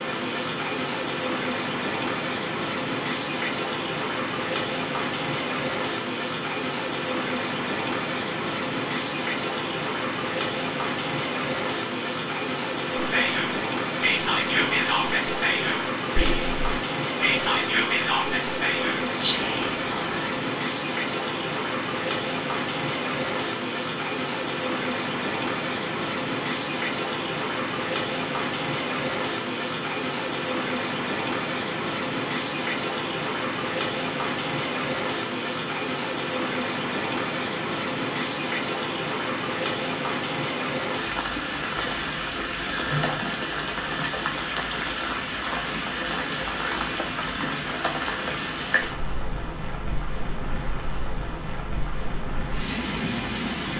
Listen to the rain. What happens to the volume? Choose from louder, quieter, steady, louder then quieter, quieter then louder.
steady.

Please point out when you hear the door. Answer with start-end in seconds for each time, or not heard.
not heard.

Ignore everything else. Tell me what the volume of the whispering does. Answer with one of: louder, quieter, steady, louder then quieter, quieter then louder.
steady.